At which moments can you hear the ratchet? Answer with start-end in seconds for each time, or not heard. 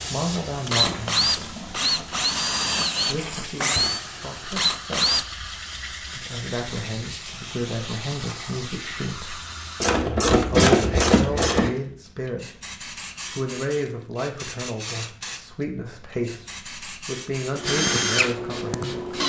0.8-3.4, 9.8-11.7.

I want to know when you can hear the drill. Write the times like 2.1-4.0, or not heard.
0.0-5.2, 17.6-19.2.